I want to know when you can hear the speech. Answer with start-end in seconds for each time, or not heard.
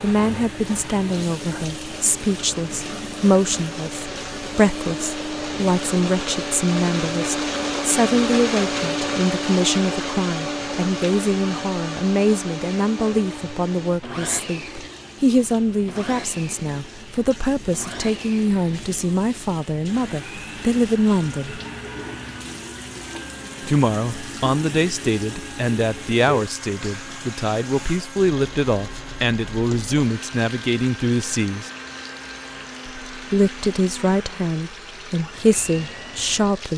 0.0-21.6, 23.6-31.7, 33.1-36.7.